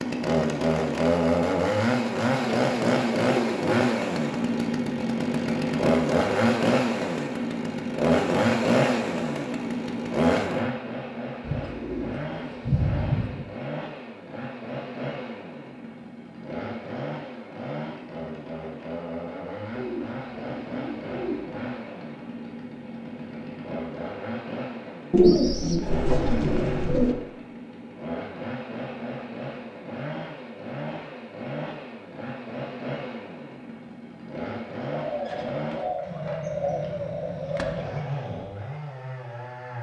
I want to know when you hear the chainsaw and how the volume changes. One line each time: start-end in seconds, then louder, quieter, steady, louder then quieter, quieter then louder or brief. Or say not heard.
0.0-39.7 quieter.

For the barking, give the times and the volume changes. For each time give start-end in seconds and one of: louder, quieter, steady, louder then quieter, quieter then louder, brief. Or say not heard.
not heard.